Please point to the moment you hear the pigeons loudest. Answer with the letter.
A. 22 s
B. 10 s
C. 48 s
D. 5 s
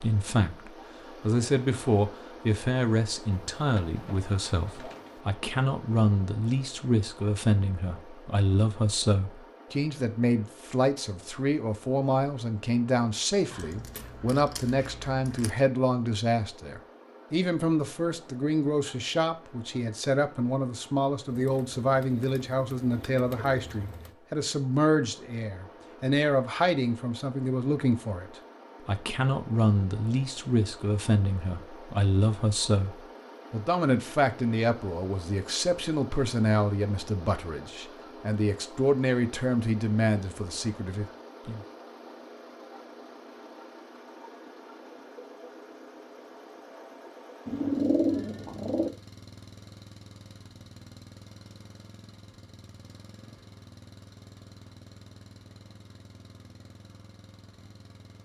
C.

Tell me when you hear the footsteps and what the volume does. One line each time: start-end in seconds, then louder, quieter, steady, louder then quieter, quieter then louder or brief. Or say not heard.
not heard.